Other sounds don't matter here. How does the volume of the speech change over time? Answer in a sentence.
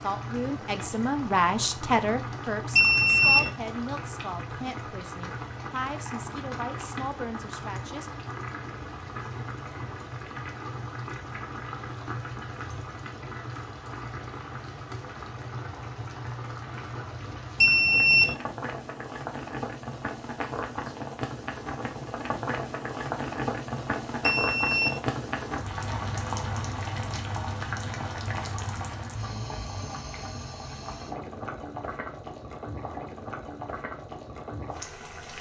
The volume of the speech goes down.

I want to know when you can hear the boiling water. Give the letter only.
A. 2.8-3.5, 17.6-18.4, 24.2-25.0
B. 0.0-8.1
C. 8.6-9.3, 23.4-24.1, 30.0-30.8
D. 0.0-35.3
D.